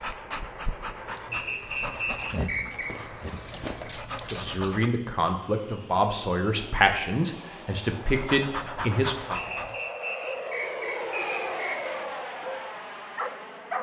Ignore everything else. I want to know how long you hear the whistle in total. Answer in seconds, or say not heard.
4 s.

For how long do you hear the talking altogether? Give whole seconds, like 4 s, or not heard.
5 s.